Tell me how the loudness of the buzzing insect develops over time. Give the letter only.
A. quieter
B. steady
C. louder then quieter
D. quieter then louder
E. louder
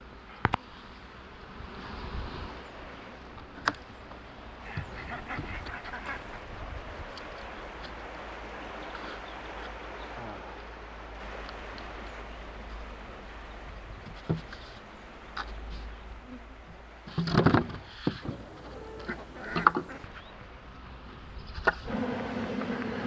D.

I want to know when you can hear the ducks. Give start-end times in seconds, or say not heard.
4.7-6.5, 18.2-20.1.